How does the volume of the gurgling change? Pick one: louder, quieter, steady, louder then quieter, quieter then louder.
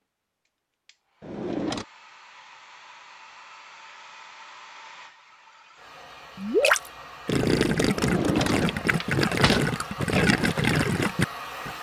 steady.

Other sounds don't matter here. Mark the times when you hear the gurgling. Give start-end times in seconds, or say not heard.
6.3-11.7.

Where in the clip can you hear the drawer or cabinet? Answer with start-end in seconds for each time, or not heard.
1.2-1.9, 7.9-9.7.